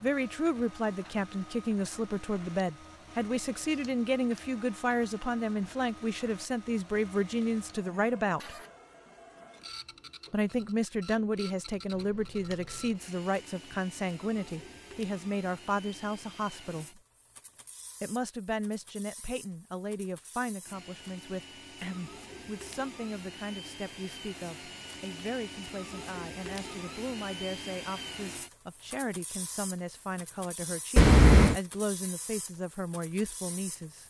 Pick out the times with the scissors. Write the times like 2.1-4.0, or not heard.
3.7-4.5, 11.9-12.9, 30.9-31.6.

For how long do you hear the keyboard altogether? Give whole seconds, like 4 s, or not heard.
not heard.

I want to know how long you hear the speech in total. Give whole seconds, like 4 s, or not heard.
31 s.